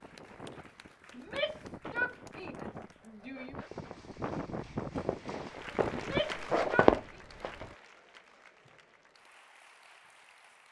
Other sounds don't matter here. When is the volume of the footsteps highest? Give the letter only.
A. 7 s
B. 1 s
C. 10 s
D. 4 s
A.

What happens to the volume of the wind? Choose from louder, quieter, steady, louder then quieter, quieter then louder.
louder.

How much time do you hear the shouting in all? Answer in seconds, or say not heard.
4 s.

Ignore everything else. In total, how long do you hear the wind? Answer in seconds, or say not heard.
6 s.